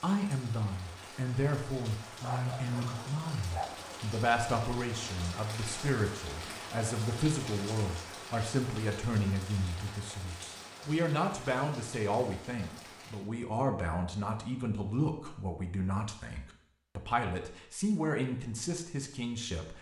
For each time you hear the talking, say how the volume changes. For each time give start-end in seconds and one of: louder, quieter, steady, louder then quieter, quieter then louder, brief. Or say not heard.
0.0-19.7 steady.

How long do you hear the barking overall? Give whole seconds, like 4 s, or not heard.
2 s.